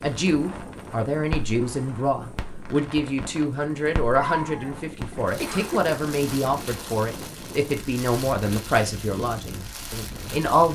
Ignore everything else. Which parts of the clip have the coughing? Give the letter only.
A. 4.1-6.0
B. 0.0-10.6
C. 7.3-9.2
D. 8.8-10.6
A.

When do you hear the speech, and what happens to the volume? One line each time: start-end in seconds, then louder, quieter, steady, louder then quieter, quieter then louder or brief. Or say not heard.
0.0-10.6 steady.